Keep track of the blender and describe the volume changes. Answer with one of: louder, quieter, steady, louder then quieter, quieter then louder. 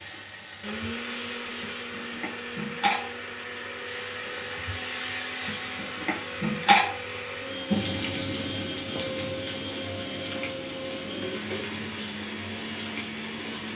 steady.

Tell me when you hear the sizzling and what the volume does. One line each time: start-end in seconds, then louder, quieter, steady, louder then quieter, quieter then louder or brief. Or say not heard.
0.0-13.7 louder then quieter.